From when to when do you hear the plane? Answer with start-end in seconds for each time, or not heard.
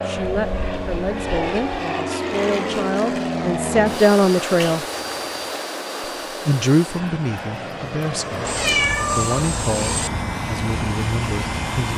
0.0-11.9.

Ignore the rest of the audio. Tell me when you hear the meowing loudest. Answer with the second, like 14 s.
9 s.